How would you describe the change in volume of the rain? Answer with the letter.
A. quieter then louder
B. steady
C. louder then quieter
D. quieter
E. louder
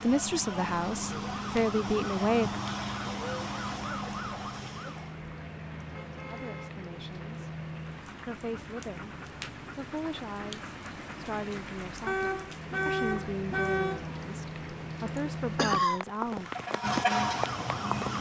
E.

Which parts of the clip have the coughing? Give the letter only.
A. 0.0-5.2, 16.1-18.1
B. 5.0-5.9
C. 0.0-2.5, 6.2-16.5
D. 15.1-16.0
D.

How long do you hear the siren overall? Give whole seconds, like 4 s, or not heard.
7 s.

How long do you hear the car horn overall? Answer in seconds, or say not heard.
3 s.